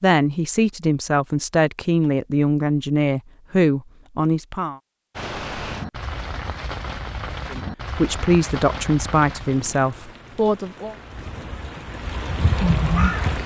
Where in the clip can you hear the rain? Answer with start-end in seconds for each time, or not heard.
5.2-13.4.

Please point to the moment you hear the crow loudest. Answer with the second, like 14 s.
13 s.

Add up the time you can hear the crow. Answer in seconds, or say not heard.
2 s.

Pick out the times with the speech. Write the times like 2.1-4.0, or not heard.
0.0-4.8, 7.5-10.9.